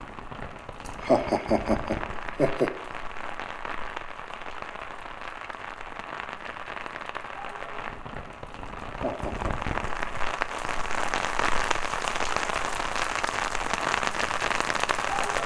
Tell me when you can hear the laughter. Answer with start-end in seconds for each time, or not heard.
0.8-2.7, 8.9-9.6.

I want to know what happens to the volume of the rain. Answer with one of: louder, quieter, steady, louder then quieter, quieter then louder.
louder.